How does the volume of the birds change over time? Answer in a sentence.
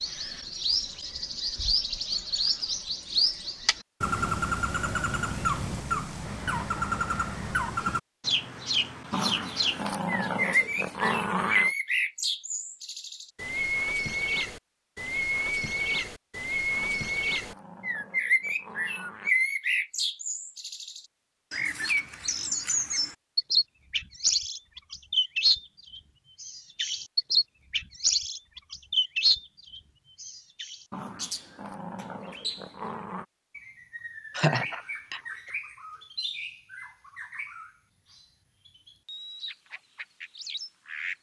The loudness of the birds goes down.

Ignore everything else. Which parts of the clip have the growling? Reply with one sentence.
You can hear the growling from 9.1 to 11.7 s, from 16.8 to 19.3 s and from 30.9 to 33.2 s.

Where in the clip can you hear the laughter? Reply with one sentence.
The laughter can be heard from 34.3 to 35.2 s.